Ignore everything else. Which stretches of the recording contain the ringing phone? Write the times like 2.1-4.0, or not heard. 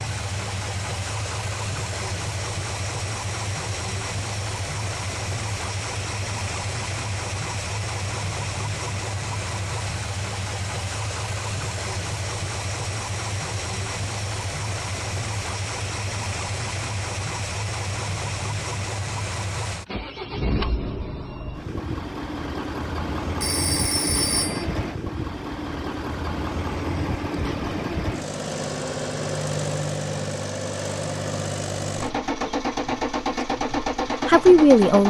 23.4-24.6.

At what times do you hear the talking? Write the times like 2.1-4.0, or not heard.
34.2-35.0.